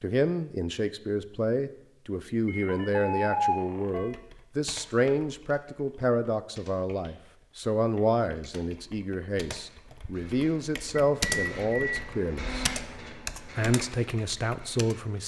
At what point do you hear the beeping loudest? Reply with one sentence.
The volume of the beeping peaks at 3 seconds.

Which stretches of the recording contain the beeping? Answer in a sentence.
You can hear the beeping from 2.5 to 4.2 s and from 10.9 to 12.7 s.